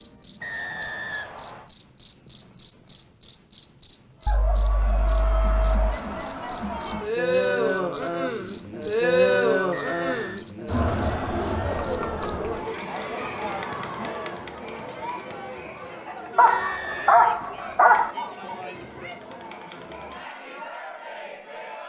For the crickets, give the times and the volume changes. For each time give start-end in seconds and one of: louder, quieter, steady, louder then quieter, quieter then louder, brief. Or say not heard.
0.0-12.3 steady.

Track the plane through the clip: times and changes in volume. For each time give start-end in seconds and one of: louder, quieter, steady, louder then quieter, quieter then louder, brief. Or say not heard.
not heard.